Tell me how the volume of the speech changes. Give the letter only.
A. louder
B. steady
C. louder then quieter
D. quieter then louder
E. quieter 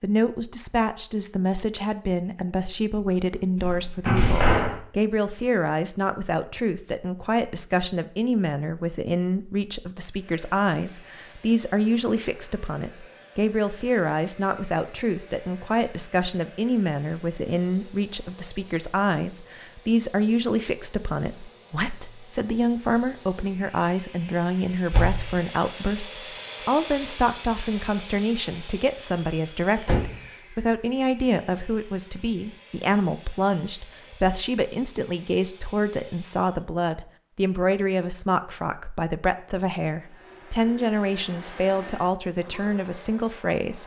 B.